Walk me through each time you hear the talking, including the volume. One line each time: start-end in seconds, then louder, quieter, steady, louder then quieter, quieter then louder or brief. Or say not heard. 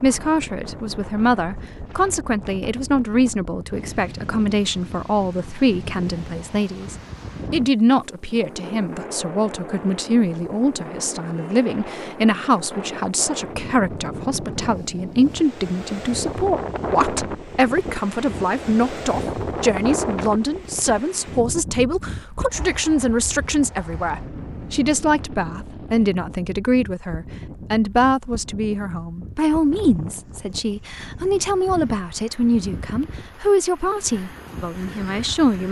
0.0-35.6 steady.